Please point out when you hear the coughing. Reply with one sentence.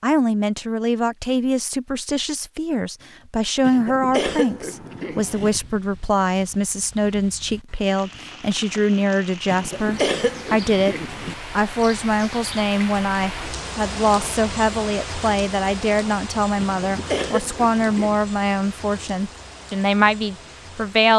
You can hear the coughing from 3.6 to 5.5 s, from 9.4 to 11.3 s and from 16.6 to 18.2 s.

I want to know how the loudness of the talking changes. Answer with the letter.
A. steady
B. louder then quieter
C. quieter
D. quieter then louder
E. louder
A.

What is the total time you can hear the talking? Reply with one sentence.
You can hear the talking for 21 seconds altogether.